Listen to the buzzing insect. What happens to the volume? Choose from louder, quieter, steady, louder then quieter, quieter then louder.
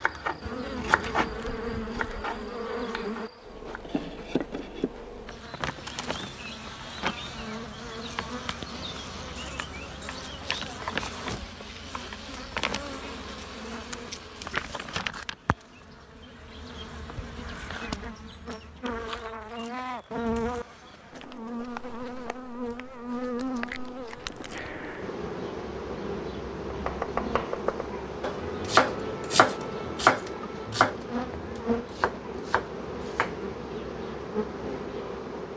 steady.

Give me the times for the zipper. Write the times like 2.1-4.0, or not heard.
not heard.